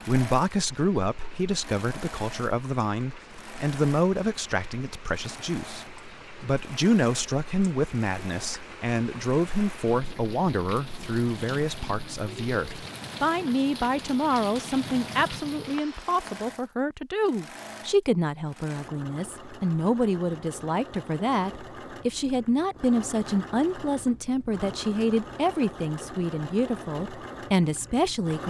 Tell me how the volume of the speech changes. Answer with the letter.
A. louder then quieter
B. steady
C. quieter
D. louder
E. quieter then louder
B.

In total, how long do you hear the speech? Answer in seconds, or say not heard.
28 s.